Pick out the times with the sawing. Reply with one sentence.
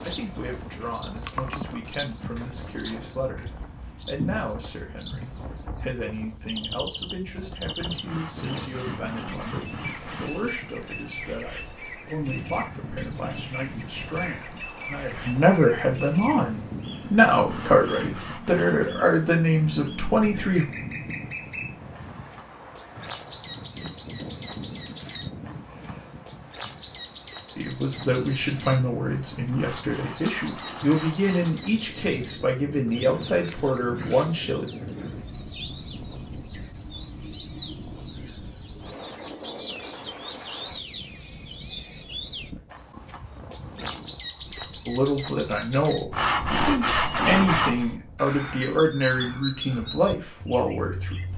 You can hear the sawing from 8.0 to 10.4 s, from 17.4 to 18.9 s, from 29.5 to 31.6 s and from 46.1 to 47.9 s.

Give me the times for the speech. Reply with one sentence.
You can hear the speech from 0.0 to 20.6 s, from 27.6 to 34.6 s and from 44.9 to 51.3 s.